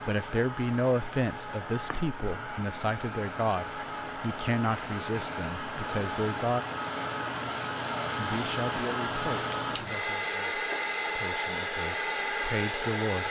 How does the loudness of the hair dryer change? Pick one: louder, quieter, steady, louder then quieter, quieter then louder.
louder.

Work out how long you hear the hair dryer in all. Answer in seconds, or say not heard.
13 s.